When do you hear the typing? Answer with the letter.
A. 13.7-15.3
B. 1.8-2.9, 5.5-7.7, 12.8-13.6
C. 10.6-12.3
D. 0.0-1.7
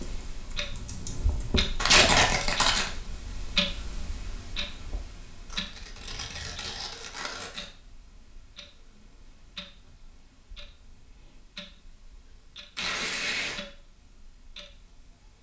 D.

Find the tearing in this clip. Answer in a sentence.
You can hear the tearing from 1.8 to 2.9 s, from 5.5 to 7.7 s and from 12.8 to 13.6 s.